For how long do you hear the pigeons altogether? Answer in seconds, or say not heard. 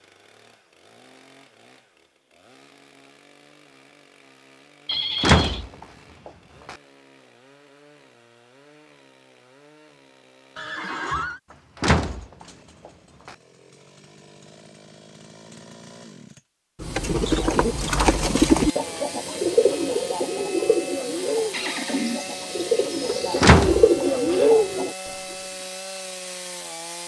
8 s.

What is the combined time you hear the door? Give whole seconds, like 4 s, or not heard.
3 s.